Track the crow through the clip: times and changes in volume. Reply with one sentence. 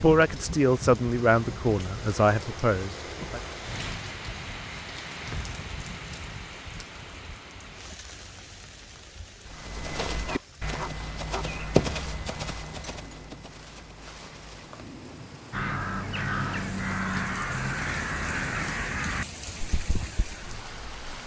You can hear the crow from 15.5 to 20.4 s, getting quieter.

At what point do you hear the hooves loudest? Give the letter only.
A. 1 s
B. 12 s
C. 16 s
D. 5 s
B.